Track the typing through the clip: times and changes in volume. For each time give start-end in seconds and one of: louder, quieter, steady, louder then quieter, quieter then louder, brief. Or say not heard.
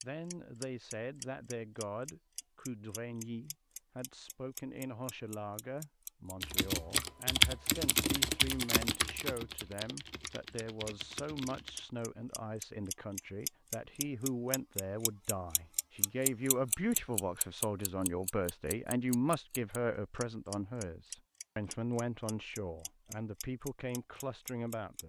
6.4-11.8 quieter.